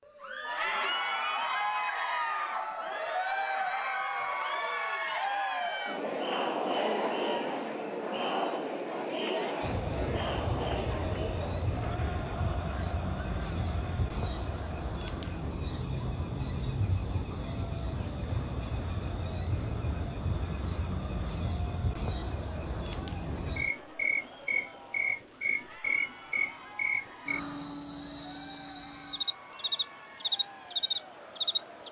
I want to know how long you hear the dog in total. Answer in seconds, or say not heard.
not heard.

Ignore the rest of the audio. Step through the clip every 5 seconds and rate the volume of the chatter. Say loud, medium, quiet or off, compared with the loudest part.
loud, loud, medium, quiet, quiet, quiet, quiet.